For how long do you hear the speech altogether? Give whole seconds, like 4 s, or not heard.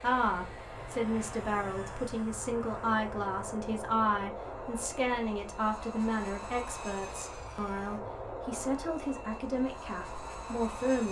11 s.